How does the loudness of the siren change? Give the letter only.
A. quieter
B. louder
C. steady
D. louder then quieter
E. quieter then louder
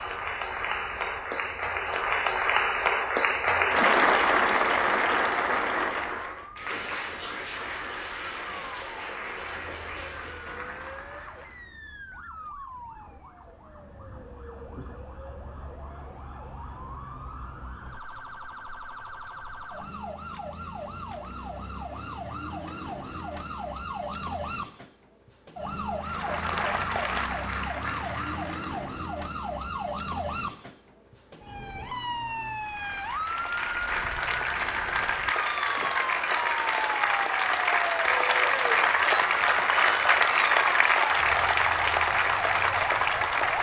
B.